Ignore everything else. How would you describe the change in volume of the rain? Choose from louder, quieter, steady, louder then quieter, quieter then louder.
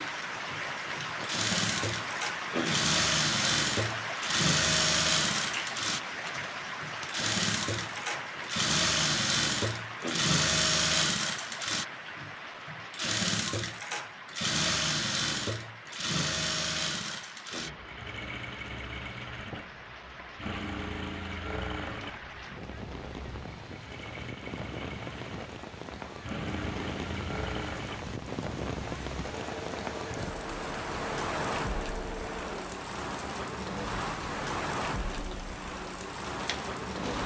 quieter then louder.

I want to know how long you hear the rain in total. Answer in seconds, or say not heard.
37 s.